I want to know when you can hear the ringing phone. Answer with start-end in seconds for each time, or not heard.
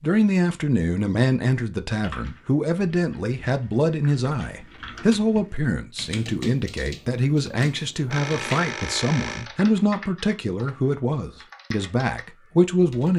8.1-9.5.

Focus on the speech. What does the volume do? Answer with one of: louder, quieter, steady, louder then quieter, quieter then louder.
steady.